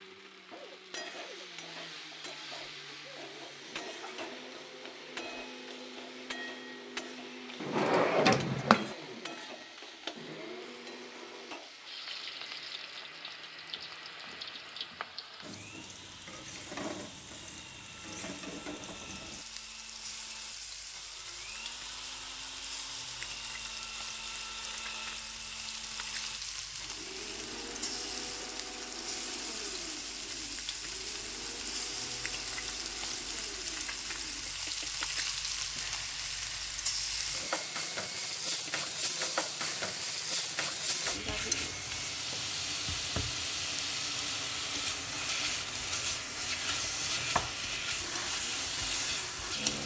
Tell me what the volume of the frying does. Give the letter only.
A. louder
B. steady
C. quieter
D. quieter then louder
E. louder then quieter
A.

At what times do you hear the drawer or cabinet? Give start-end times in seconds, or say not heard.
7.6-8.9.